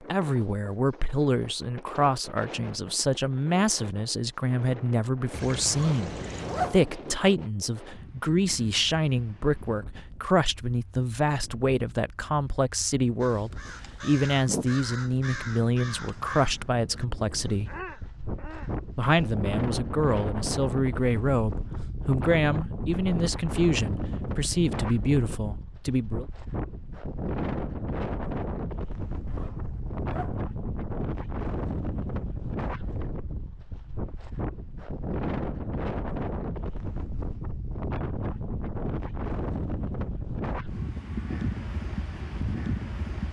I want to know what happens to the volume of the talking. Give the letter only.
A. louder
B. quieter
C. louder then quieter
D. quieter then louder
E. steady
E.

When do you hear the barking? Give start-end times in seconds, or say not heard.
not heard.